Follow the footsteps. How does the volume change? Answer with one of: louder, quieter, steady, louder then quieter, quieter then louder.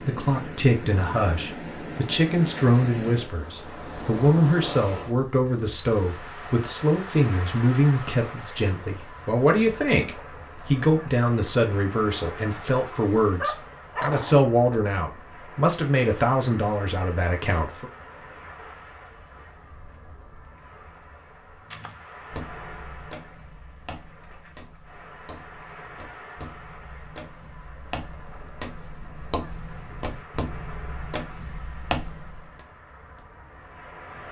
quieter then louder.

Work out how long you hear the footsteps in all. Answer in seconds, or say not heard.
11 s.